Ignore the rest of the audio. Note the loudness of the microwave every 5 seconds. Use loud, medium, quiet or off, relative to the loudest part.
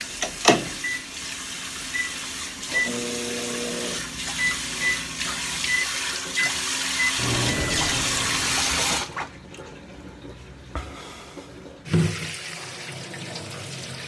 loud, loud, off.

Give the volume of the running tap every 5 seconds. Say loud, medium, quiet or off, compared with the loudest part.
medium, loud, medium.